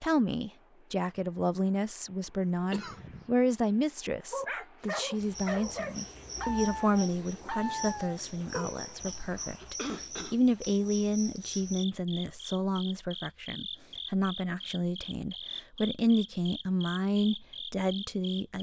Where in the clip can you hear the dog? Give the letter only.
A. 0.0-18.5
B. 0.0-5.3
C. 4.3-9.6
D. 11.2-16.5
C.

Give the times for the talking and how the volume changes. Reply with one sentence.
The talking can be heard from 0.0 to 18.5 s, at a steady volume.